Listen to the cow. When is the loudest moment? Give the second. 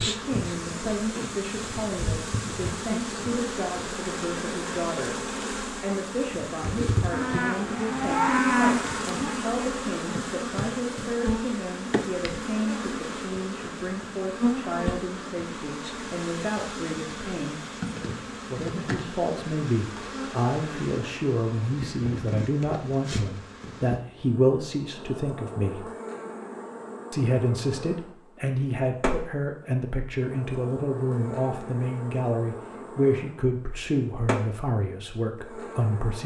9 s.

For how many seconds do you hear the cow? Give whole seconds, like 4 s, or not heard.
2 s.